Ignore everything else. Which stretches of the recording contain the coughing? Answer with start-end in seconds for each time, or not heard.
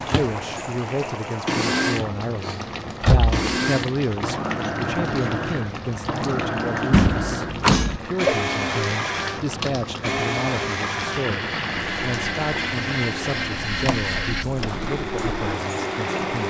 7.7-8.3.